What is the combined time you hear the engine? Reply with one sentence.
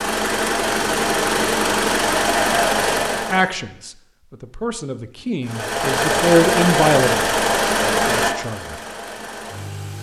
The engine can be heard for 8 seconds in total.